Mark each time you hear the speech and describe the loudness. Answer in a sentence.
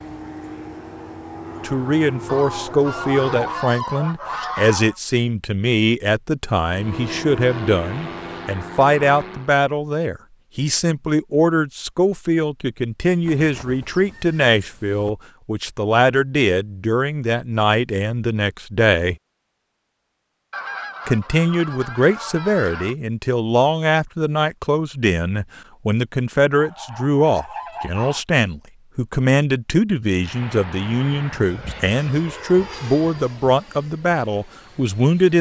The speech can be heard from 1.6 to 19.1 s, at a steady volume; and from 21.1 to 35.3 s, at a steady volume.